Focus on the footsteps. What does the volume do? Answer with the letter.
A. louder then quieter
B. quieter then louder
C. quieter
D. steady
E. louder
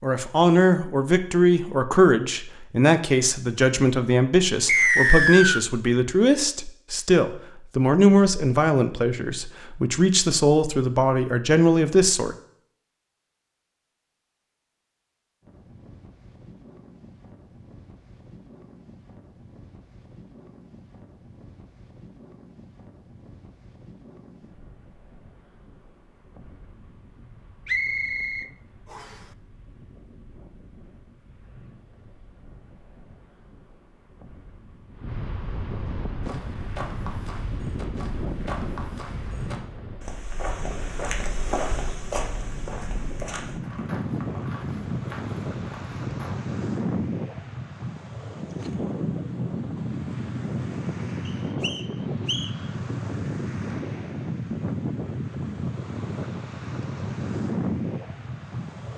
A.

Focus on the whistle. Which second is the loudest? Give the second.
5 s.